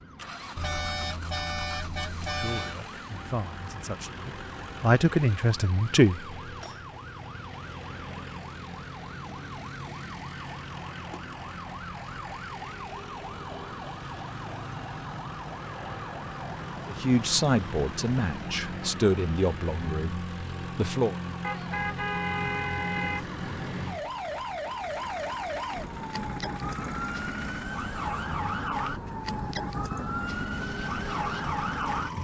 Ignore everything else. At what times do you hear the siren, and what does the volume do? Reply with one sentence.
The siren can be heard from 0.0 to 32.1 s, getting louder.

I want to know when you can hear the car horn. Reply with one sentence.
The car horn can be heard from 0.6 to 2.8 s and from 21.4 to 23.2 s.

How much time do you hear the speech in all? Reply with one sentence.
The speech can be heard for 8 seconds in total.